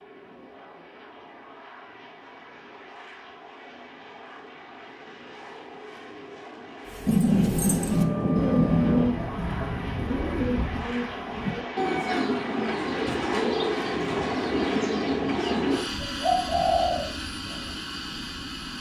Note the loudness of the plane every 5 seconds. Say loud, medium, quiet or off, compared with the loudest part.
quiet, medium, loud, loud.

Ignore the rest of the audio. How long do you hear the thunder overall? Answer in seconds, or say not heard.
2 s.